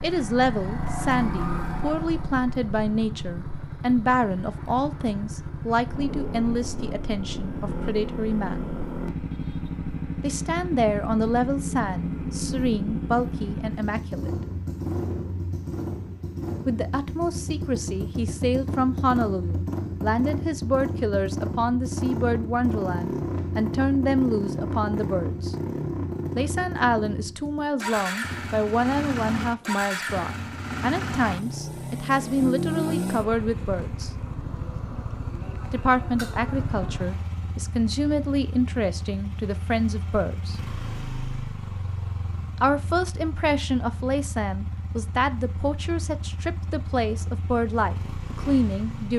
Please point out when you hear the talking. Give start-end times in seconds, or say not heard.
0.0-8.7, 10.2-14.4, 16.6-25.6, 26.4-34.1, 35.7-40.5, 42.6-49.1.